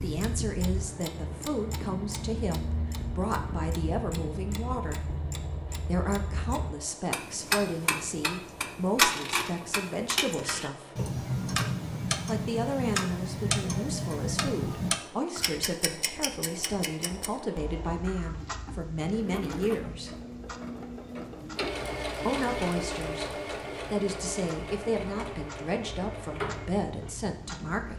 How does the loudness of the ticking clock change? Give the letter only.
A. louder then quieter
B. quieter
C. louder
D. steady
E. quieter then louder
A.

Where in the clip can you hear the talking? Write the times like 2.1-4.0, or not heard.
0.0-5.0, 5.8-11.0, 12.2-20.1, 22.2-27.9.